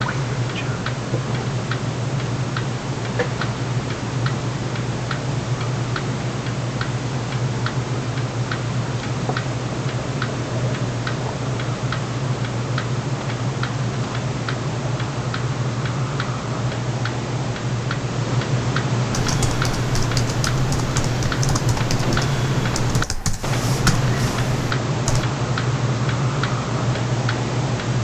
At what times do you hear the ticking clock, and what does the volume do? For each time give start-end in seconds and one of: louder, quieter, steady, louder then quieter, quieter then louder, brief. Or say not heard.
0.0-27.9 steady.